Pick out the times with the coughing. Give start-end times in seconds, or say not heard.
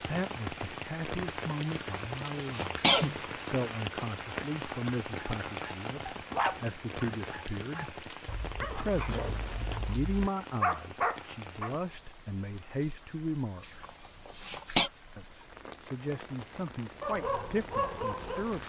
1.7-3.2, 13.8-14.9.